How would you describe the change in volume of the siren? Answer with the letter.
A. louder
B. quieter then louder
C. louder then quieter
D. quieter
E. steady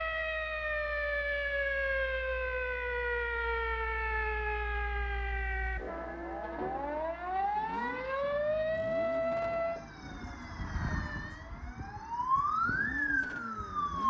E.